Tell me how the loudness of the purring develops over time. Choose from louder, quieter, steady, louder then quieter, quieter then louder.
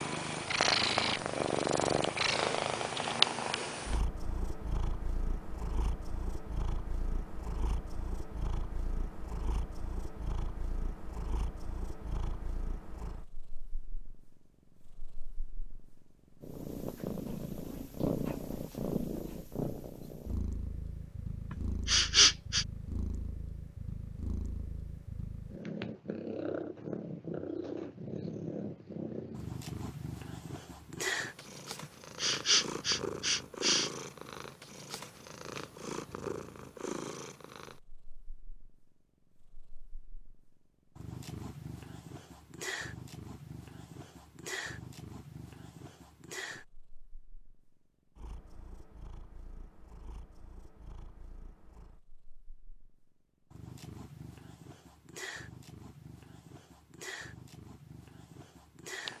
quieter.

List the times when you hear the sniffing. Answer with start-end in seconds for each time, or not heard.
21.5-22.6, 31.8-33.9.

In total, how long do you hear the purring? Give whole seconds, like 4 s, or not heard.
59 s.